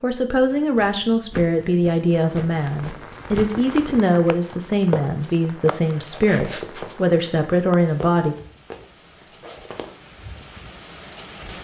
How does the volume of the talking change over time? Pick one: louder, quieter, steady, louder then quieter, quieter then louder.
steady.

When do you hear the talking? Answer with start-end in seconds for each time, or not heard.
0.0-8.3.